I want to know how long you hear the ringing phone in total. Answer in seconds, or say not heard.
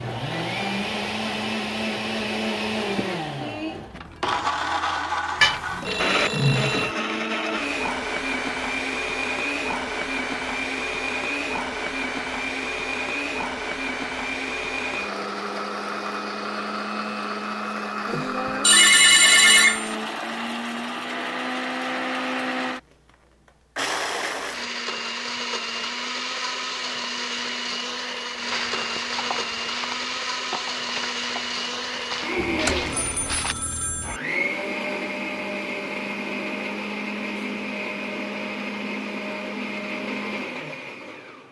5 s.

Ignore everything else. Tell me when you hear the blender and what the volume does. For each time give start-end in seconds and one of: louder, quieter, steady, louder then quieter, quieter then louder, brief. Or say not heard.
0.0-22.8 steady
23.8-41.4 steady.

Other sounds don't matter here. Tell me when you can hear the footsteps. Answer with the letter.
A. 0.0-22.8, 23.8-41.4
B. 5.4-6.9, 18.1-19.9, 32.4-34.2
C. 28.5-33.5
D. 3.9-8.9
C.